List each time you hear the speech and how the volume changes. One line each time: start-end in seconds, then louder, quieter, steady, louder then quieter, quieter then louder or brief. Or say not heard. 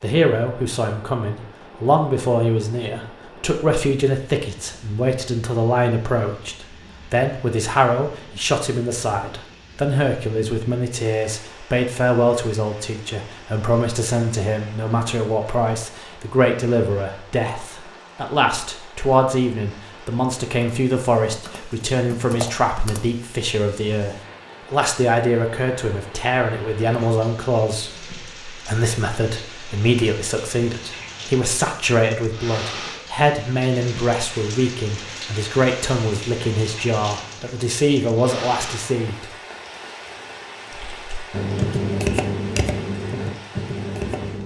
0.0-39.2 steady.